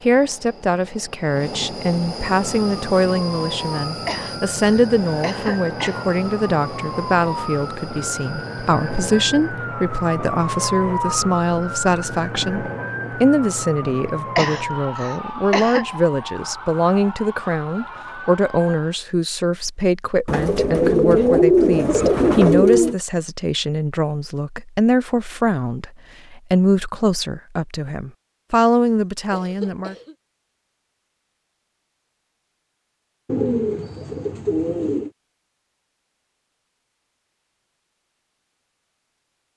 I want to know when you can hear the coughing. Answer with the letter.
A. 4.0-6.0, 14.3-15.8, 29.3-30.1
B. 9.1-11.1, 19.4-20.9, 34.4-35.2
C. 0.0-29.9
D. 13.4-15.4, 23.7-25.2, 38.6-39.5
A.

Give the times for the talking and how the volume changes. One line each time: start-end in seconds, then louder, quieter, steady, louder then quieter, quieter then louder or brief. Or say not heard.
0.0-29.9 steady.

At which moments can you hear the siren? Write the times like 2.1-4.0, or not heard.
2.4-19.0.